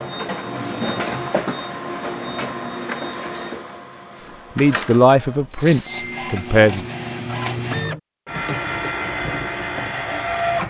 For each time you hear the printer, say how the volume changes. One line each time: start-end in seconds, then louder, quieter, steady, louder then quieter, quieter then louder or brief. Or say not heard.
0.0-10.6 quieter then louder.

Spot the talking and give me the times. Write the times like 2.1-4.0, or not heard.
4.5-6.8.